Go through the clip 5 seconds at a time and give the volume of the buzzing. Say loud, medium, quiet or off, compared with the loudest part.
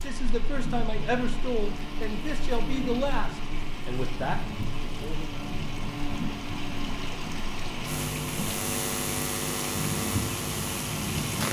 medium, loud, loud.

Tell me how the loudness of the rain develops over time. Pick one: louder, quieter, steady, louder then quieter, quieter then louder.
louder.